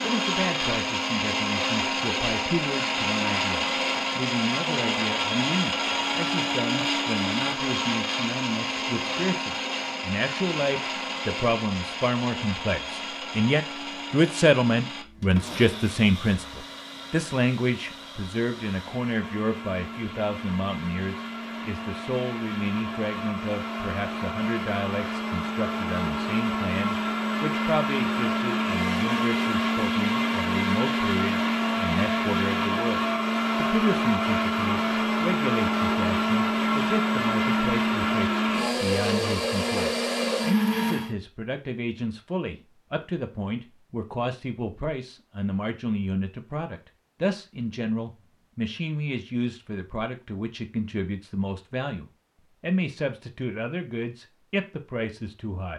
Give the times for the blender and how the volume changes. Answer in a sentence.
The blender can be heard from 0.0 to 41.1 s, getting quieter then louder.